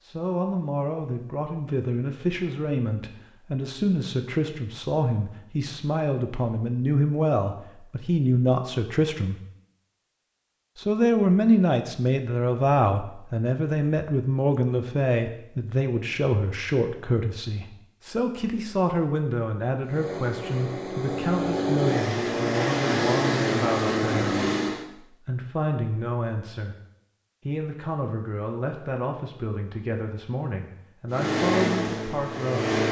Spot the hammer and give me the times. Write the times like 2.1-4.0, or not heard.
not heard.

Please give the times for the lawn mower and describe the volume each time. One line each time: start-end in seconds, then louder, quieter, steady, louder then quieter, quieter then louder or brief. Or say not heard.
19.8-24.8 louder
31.1-32.8 brief.